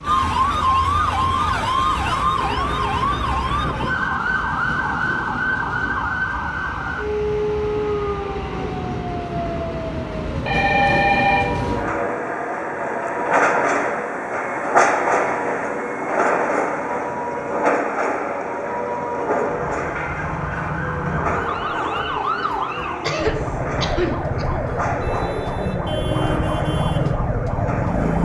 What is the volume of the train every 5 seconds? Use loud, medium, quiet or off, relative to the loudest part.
quiet, medium, loud, loud, medium, medium.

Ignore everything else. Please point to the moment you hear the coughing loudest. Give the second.
23 s.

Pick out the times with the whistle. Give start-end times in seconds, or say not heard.
not heard.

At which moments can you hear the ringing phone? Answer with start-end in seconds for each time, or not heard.
10.4-11.4.